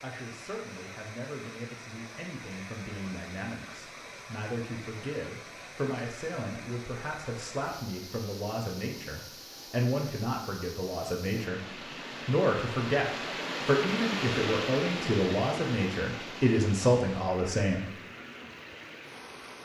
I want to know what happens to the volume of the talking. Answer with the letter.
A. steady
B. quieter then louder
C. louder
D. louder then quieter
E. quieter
C.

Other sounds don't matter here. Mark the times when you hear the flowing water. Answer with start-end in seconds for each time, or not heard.
0.0-19.5.